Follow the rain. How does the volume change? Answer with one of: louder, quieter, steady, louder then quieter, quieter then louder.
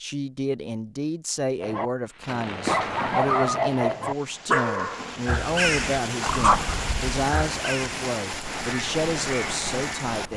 louder.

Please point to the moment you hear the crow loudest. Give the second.
6 s.